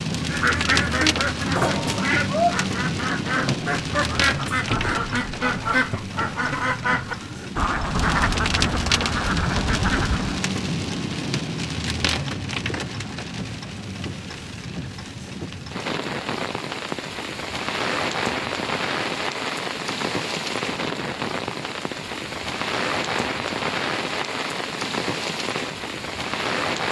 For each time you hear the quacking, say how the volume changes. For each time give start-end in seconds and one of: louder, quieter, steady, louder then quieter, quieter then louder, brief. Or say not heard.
0.1-10.4 steady.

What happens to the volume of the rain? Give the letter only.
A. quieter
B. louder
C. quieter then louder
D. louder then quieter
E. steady
E.